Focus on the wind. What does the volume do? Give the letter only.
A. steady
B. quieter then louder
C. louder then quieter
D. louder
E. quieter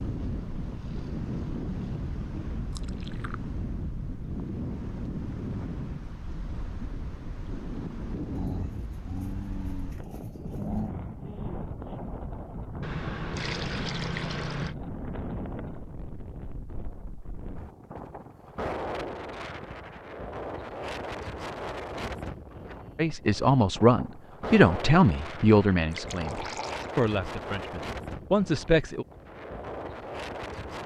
A.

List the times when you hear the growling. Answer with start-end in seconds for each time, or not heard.
8.3-10.9.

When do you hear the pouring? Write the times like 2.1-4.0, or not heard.
2.7-3.4, 12.8-14.8, 25.9-26.9.